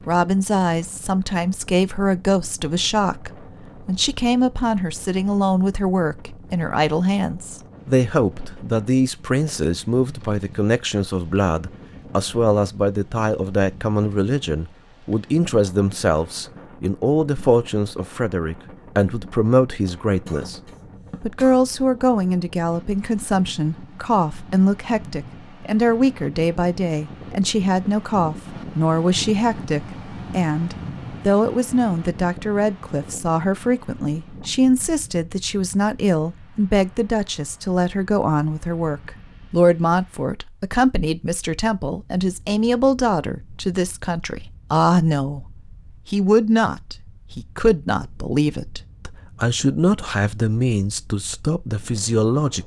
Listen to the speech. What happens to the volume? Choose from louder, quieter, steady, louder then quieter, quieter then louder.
steady.